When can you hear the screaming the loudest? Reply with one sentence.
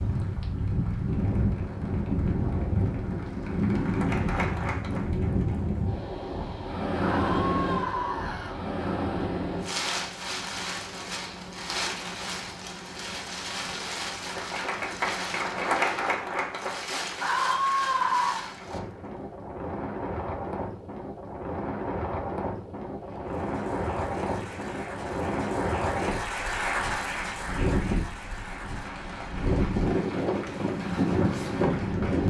The volume of the screaming peaks at 18 seconds.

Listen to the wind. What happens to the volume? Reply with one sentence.
The volume of the wind goes down, then up.